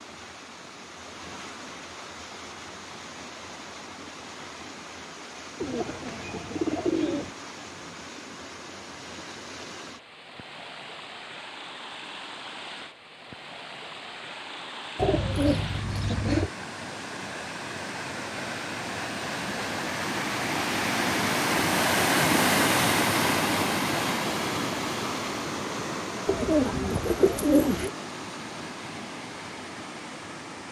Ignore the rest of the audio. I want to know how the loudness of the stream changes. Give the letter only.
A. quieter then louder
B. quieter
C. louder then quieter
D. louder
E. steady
C.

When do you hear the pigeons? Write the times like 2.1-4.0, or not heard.
5.6-7.3, 14.9-16.5, 26.2-27.9.